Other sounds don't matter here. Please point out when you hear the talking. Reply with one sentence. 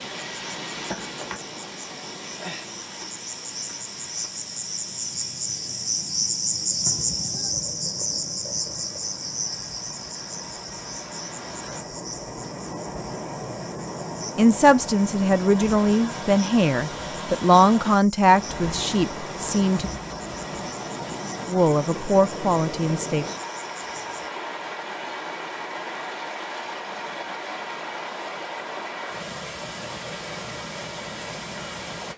The talking can be heard from 14.3 to 19.9 s and from 21.4 to 23.2 s.